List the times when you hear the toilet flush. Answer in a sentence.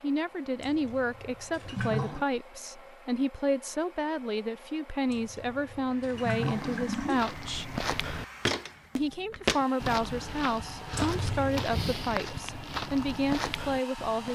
The toilet flush can be heard from 0.6 to 2.2 s, from 5.1 to 7.3 s and from 10.9 to 11.7 s.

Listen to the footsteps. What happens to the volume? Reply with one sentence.
The loudness of the footsteps goes up, then down.